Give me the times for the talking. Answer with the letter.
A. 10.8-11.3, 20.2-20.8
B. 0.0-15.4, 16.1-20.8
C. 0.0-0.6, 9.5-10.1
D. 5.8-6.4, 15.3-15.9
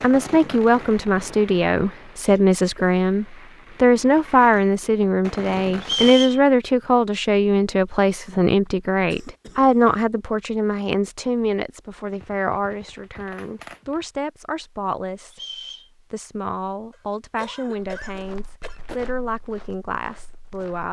B.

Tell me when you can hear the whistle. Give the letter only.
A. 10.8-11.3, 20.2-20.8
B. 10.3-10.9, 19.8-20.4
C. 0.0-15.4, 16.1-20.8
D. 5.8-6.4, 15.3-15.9
D.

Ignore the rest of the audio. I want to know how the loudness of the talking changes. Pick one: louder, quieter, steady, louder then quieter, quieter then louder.
quieter.